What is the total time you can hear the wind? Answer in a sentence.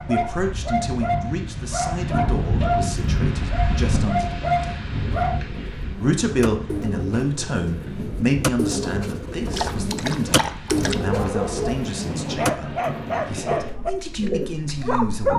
The wind can be heard for 15 seconds in total.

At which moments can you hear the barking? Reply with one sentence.
You can hear the barking from 0.0 to 5.4 s and from 9.5 to 15.3 s.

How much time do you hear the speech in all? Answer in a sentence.
You can hear the speech for 14 seconds altogether.